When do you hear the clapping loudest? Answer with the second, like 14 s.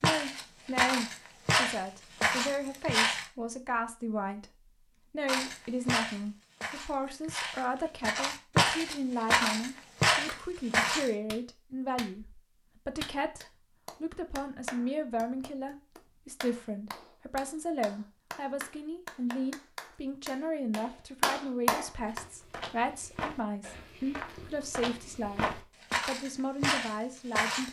22 s.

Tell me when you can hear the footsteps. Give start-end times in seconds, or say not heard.
0.0-3.2, 5.2-11.1, 22.0-27.6.